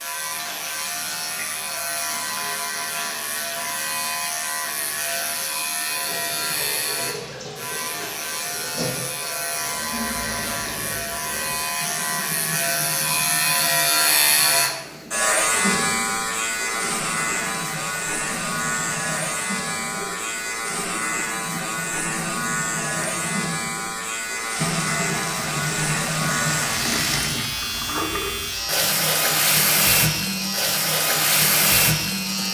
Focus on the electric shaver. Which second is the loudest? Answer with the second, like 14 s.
14 s.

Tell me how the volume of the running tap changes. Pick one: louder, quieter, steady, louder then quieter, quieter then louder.
louder.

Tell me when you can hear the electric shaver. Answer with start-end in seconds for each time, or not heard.
0.0-32.5.